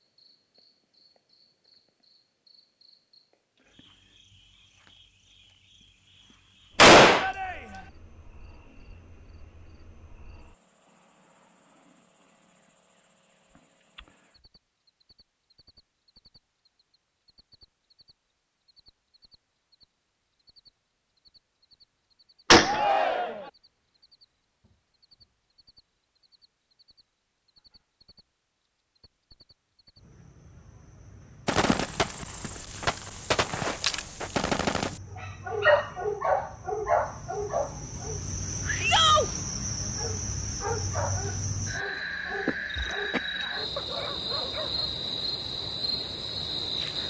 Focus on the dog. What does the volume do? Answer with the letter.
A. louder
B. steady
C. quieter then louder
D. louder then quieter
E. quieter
E.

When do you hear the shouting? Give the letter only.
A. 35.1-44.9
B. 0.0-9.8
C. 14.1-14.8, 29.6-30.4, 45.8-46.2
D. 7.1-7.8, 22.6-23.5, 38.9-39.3
D.